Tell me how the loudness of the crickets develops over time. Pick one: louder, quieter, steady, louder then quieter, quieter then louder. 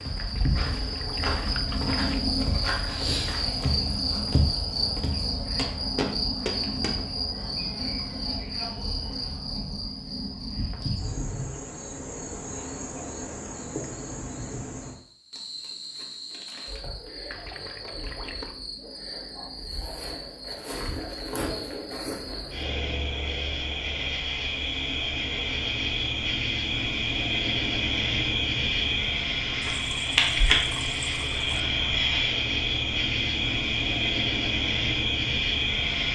quieter then louder.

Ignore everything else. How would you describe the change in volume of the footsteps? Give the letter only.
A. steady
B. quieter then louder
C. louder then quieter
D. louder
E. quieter
D.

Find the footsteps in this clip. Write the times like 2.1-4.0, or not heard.
0.0-7.0.